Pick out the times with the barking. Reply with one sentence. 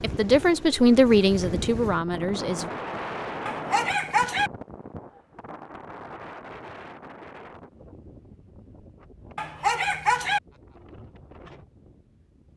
The barking can be heard from 3.5 to 4.5 s and from 9.3 to 10.4 s.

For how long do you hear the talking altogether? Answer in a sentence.
You can hear the talking for 3 seconds altogether.